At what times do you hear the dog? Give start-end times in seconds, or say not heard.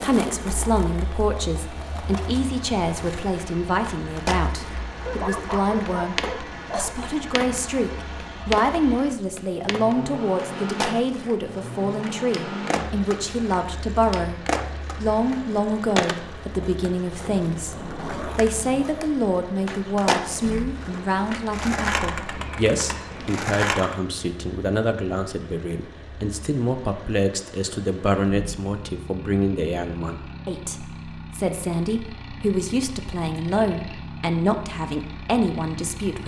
5.0-7.0.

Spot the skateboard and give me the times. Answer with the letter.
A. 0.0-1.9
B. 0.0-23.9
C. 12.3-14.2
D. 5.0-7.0
B.